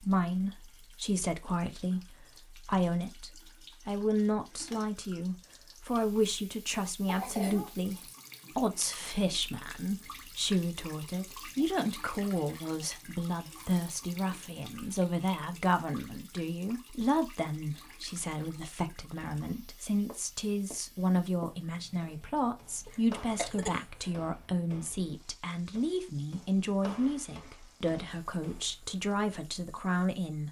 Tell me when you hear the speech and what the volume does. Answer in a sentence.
You can hear the speech from 0.0 to 30.4 s, at a steady volume.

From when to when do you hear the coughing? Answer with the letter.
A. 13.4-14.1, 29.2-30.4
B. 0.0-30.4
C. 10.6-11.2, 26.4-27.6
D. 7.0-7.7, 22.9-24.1
D.